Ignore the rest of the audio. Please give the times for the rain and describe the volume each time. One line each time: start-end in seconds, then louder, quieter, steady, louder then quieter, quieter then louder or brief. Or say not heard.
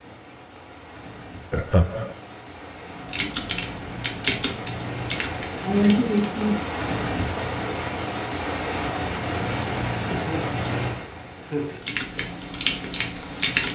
0.0-13.7 louder then quieter.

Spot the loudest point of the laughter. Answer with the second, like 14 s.
6 s.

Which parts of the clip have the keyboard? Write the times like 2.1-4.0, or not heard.
3.0-6.7, 11.8-13.7.